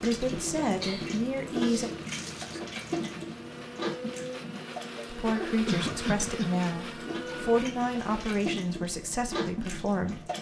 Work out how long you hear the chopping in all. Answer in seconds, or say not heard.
not heard.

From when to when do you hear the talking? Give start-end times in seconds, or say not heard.
0.0-1.9, 5.1-10.3.